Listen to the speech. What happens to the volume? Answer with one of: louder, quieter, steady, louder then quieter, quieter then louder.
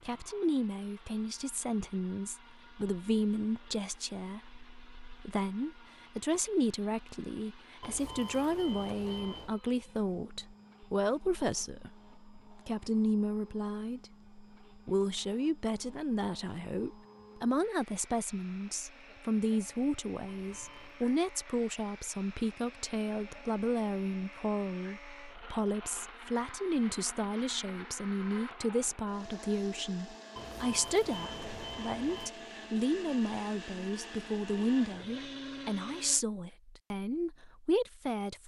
steady.